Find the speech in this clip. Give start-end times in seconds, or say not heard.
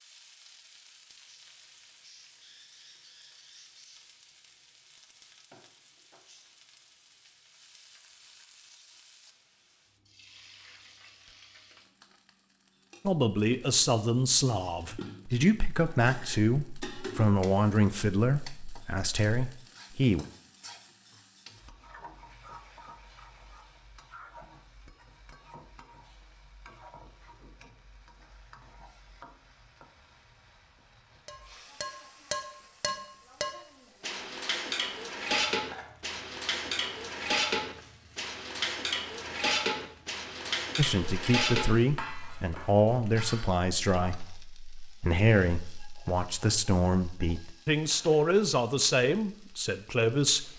13.1-20.2, 40.8-50.5.